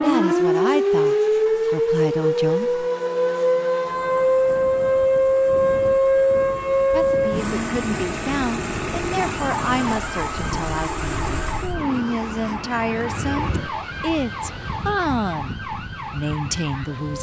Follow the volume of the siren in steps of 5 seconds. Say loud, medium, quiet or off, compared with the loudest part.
loud, loud, quiet, quiet.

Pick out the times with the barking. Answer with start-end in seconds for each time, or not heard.
not heard.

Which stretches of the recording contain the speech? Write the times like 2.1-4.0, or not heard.
0.0-2.8, 6.9-17.1.